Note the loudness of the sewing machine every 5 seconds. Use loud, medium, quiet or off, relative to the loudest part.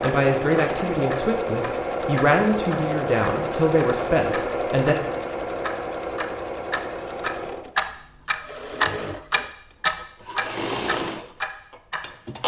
loud, medium, loud.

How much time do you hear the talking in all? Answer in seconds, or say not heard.
5 s.